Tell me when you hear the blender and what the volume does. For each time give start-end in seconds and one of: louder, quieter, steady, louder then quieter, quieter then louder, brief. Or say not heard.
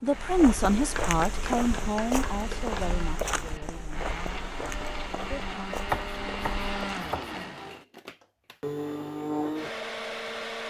0.0-10.6 louder.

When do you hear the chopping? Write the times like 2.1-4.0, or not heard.
0.9-2.9, 5.9-7.4.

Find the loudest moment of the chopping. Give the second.
6 s.